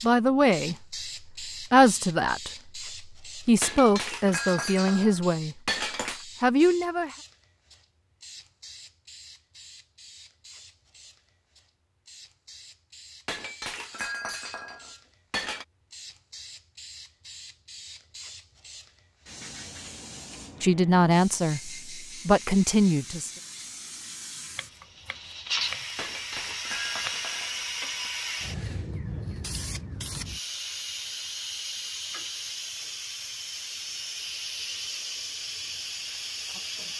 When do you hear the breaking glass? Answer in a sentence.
The breaking glass can be heard from 3.6 to 6.2 s, from 13.2 to 15.7 s and from 25.9 to 28.1 s.